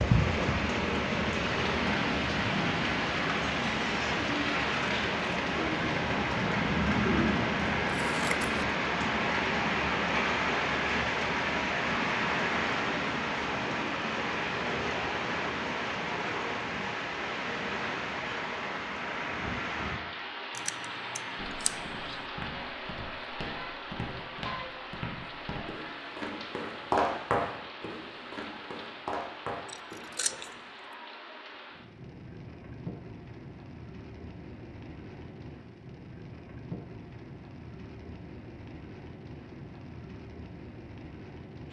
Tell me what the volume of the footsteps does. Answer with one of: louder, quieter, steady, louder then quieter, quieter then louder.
louder then quieter.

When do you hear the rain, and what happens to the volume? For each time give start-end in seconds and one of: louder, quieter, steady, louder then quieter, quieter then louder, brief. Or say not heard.
0.0-41.6 quieter.